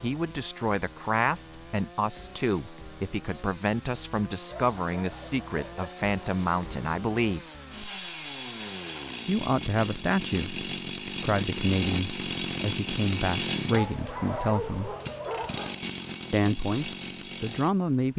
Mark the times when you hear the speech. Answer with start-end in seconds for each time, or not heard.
0.0-7.4, 9.2-14.9, 16.3-18.1.